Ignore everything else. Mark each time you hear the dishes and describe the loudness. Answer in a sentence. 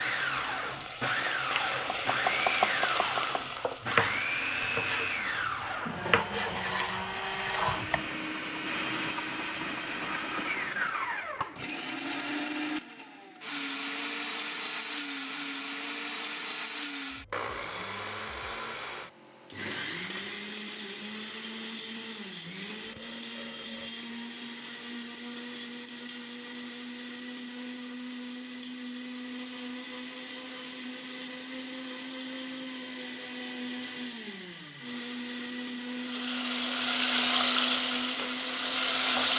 The dishes can't be heard in this clip.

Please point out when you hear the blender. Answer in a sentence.
You can hear the blender from 0.0 to 39.3 s.